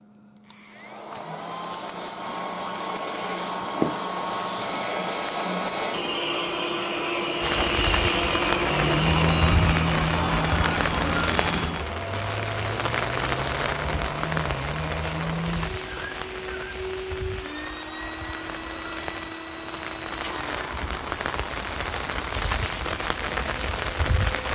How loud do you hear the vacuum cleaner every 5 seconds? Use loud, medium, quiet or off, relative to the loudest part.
medium, loud, medium, medium, quiet.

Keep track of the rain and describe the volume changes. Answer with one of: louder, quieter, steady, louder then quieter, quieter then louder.
quieter then louder.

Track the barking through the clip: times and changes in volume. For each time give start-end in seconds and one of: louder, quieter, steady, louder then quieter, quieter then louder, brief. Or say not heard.
not heard.